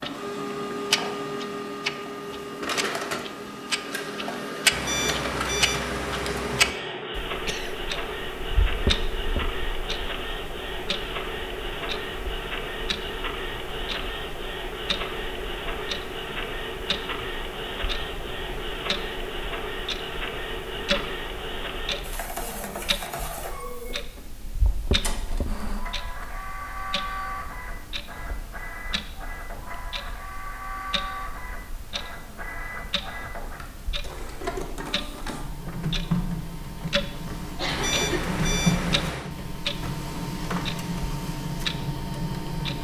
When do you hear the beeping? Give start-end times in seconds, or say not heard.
4.7-6.8, 37.6-39.3.